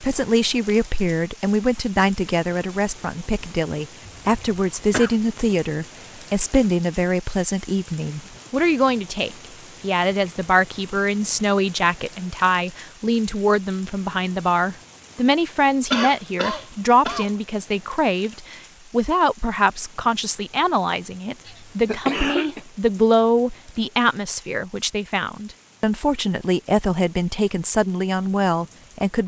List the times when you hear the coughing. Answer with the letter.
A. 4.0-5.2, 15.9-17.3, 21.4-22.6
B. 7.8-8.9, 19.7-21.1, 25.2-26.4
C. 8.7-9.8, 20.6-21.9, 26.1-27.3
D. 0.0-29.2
A.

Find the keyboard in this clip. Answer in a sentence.
You can't hear the keyboard here.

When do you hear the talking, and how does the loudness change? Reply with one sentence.
You can hear the talking from 0.0 to 29.2 s, at a steady volume.